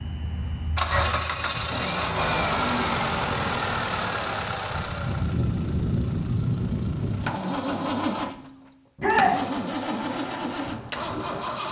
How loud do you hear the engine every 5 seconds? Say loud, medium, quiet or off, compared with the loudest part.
loud, loud, medium.